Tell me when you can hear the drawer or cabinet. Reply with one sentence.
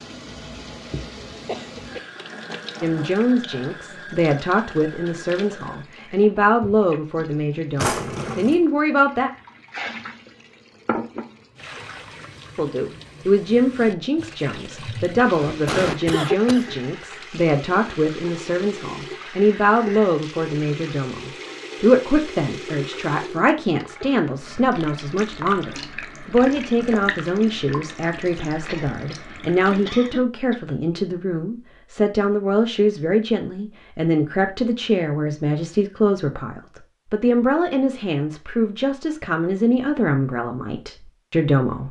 You can hear the drawer or cabinet from 7.8 to 8.6 s.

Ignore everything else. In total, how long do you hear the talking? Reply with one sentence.
You can hear the talking for 36 seconds altogether.